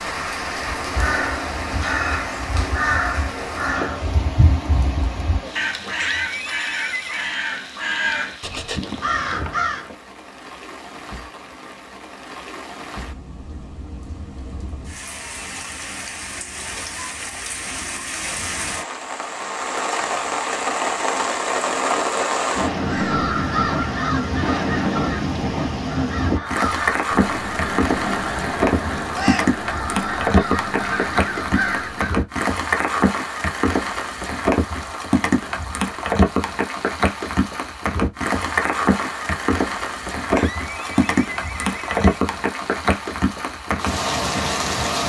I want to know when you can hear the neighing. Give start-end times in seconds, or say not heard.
6.0-7.3, 40.3-42.2.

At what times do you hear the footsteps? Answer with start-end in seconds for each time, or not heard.
not heard.